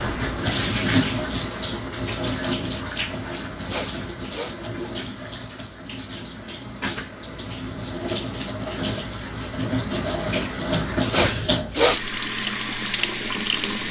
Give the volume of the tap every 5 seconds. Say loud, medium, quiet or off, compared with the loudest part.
loud, medium, loud.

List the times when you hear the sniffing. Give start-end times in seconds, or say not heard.
3.7-4.5, 11.1-12.0.